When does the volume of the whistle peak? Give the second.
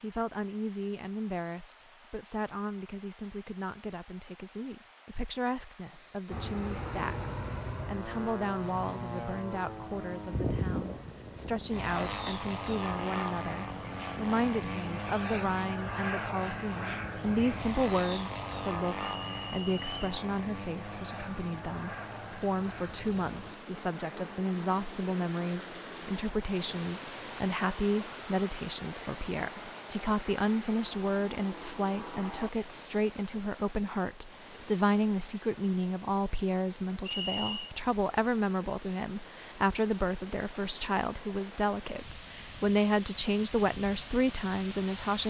37 s.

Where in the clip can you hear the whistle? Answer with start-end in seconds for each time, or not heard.
19.0-19.9, 37.0-37.8.